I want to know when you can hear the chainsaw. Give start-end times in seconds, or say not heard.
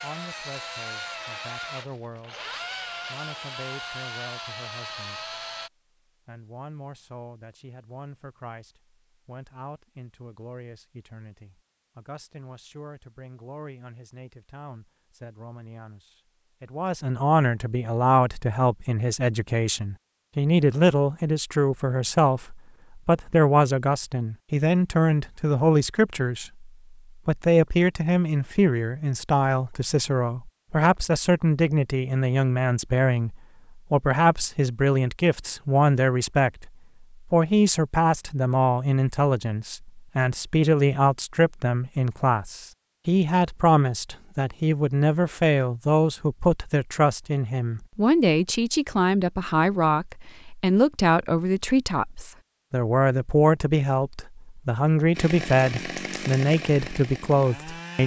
0.0-5.7, 55.1-58.0.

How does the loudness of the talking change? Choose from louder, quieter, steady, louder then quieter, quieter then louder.
louder.